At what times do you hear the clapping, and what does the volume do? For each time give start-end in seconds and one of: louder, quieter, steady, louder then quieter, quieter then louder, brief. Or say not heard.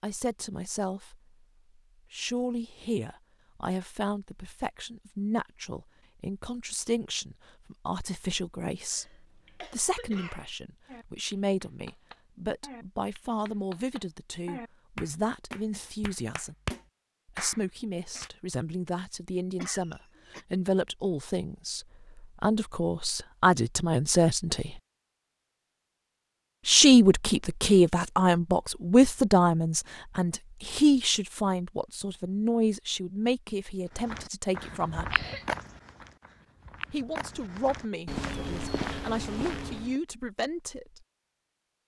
10.8-18.3 louder.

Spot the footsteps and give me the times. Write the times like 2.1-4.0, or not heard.
34.0-40.0.